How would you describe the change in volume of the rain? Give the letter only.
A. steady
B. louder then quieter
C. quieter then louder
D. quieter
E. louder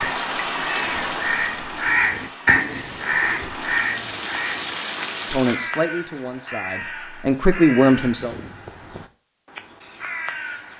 C.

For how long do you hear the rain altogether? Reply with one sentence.
The rain can be heard for 6 seconds in total.